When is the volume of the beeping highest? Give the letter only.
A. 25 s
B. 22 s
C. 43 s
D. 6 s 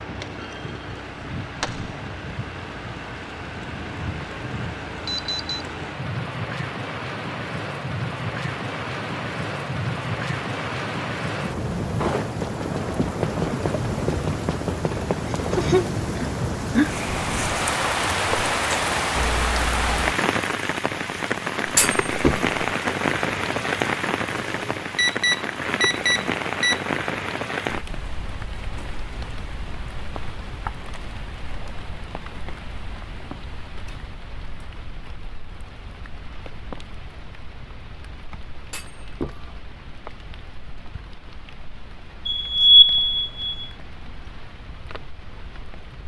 C.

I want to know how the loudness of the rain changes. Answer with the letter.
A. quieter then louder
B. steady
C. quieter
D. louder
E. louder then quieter
E.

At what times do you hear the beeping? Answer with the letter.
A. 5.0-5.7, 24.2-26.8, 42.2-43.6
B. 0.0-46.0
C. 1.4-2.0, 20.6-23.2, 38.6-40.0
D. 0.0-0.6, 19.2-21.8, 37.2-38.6
A.